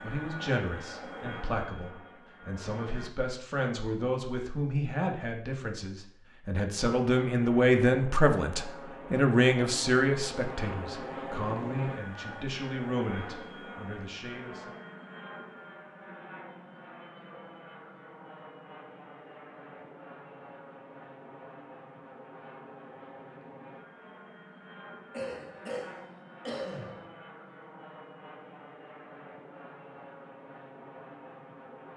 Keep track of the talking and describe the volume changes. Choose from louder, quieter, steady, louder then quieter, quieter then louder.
louder then quieter.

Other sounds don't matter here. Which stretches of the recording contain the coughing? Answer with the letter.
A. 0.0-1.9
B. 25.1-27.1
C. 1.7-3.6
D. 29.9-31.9
B.